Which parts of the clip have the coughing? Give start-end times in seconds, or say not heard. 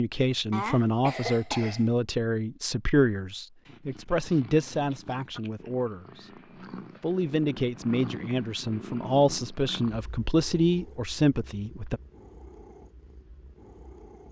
0.5-1.9.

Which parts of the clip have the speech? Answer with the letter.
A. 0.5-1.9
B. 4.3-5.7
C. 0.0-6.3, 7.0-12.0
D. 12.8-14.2
C.